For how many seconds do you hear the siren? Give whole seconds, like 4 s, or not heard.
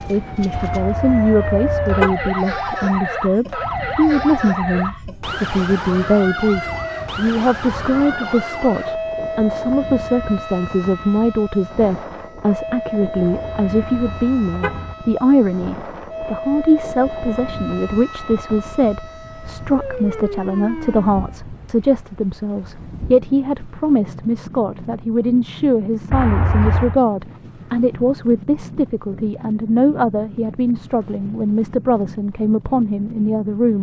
21 s.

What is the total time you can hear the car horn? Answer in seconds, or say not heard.
4 s.